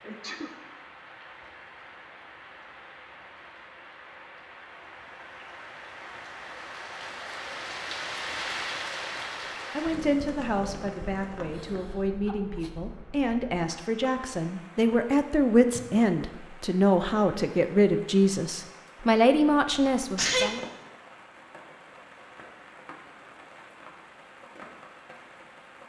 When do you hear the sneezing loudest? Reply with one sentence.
The loudest moment of the sneezing is at 20 seconds.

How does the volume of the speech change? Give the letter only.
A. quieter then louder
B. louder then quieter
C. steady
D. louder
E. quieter
D.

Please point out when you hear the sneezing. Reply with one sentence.
You can hear the sneezing from 0.0 to 0.5 s, from 11.6 to 12.7 s and from 19.7 to 20.6 s.